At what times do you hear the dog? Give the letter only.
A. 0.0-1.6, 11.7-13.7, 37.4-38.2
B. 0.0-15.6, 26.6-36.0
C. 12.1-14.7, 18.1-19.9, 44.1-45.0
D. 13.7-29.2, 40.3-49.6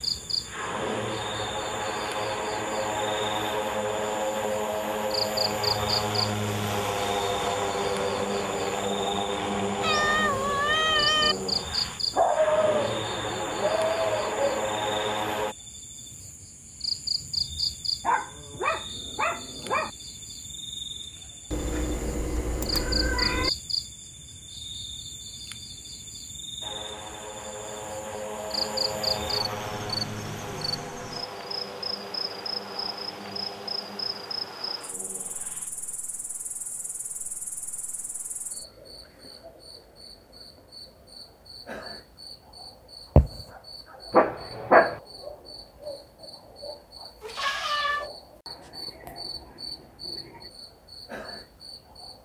C.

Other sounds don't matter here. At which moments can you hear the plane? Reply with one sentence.
You can hear the plane from 0.0 to 15.6 s and from 26.6 to 36.0 s.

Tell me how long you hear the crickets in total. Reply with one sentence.
You can hear the crickets for 52 seconds altogether.